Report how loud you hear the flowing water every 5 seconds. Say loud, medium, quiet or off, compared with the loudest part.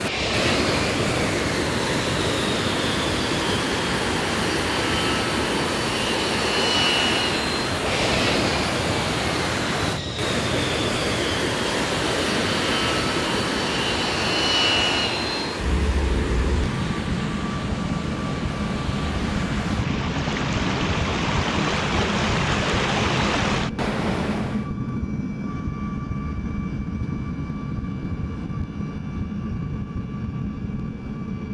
loud, loud, loud, medium, loud, off, off.